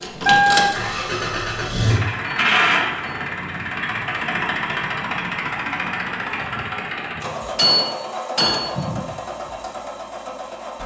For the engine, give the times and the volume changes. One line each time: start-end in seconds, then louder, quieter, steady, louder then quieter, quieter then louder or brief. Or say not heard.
0.0-10.8 quieter.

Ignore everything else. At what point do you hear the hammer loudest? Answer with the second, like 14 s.
8 s.